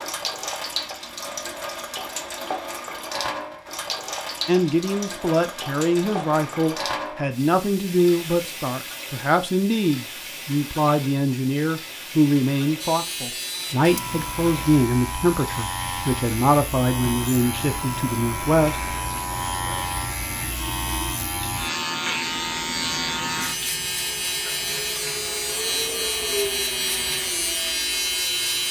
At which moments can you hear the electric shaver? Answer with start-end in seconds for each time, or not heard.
12.8-28.6.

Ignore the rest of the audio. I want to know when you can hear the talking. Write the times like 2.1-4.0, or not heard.
4.5-18.9.